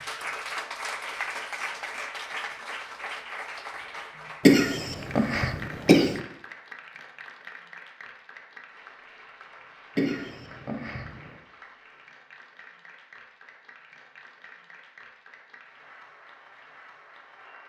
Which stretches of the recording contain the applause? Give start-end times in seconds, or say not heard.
0.0-17.6.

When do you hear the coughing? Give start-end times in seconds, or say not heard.
4.5-6.2, 9.9-11.3.